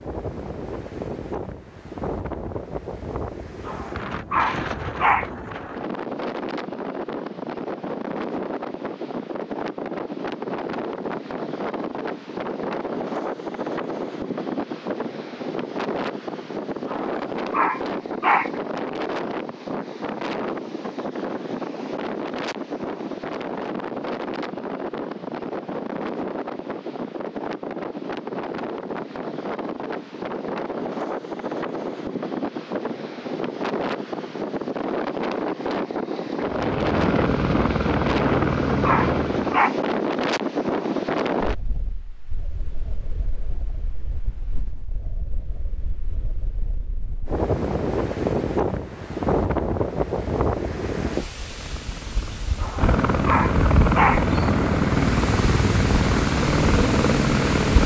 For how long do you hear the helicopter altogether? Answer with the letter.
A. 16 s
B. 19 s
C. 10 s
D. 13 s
C.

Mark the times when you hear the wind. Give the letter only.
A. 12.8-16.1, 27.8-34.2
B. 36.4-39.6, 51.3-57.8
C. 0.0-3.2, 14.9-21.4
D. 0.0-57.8
D.